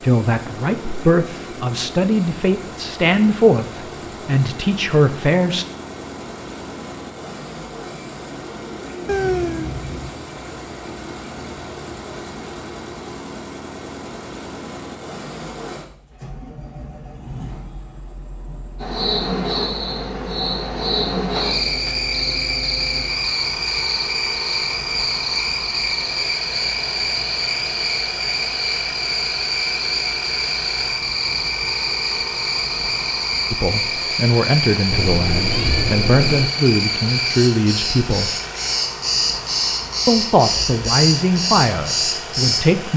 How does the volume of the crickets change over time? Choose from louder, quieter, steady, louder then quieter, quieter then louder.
steady.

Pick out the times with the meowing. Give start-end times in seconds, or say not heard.
9.1-10.1, 21.3-22.0, 34.9-36.5.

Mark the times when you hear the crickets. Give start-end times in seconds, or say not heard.
18.8-42.9.